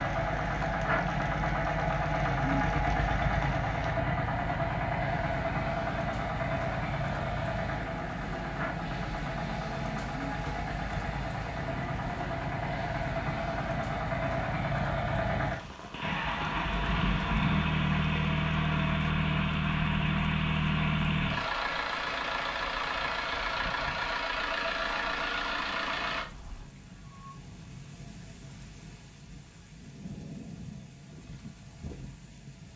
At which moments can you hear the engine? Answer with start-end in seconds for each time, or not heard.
0.0-26.2.